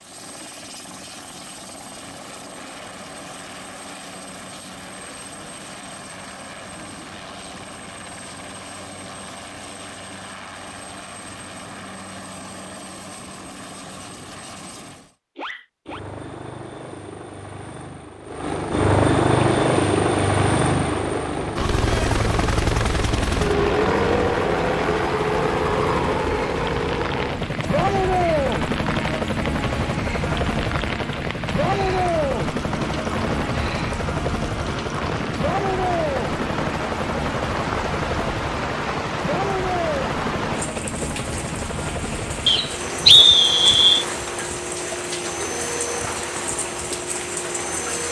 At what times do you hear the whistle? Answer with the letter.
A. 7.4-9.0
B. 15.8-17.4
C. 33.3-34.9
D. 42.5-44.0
D.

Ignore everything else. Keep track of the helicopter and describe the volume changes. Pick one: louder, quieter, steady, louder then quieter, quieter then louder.
louder then quieter.